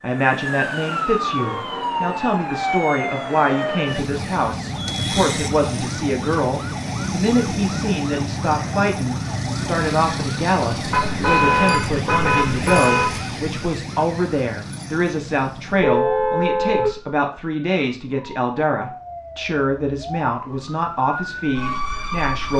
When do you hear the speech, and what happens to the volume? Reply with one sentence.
You can hear the speech from 0.0 to 22.5 s, at a steady volume.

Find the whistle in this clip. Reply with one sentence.
The whistle can't be heard in this clip.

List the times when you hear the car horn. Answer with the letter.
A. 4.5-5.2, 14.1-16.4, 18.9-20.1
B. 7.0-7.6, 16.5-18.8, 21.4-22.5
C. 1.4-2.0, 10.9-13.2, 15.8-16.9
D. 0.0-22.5
C.